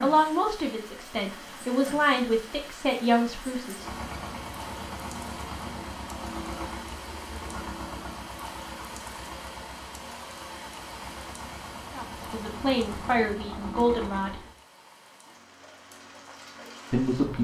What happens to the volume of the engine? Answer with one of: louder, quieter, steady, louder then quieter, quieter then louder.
quieter then louder.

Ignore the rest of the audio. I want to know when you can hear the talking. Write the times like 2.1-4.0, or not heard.
0.0-3.9, 11.9-14.4, 16.9-17.3.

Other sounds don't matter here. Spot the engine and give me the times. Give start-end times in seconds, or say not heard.
3.8-14.6.